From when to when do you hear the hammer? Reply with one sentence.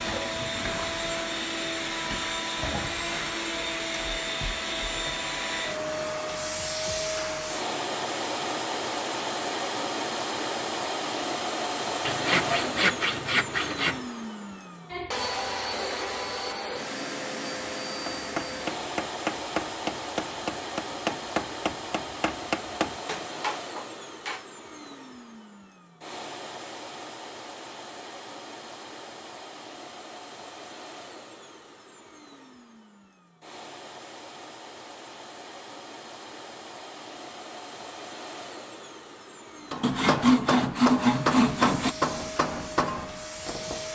You can hear the hammer from 18.1 to 24.4 s and from 39.7 to 43.9 s.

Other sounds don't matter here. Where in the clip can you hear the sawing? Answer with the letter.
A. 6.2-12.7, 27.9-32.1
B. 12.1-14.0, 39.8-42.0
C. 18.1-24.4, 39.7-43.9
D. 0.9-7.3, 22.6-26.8
B.